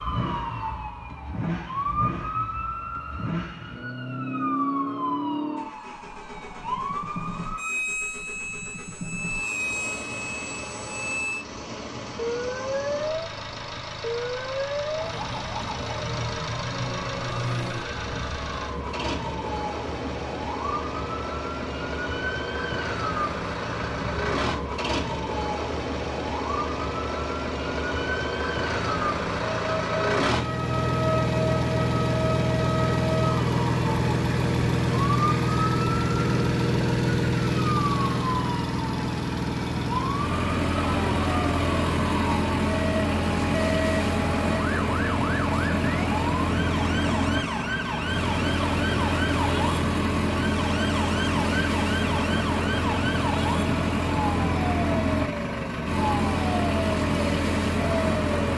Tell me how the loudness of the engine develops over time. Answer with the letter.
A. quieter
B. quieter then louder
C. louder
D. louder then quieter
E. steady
C.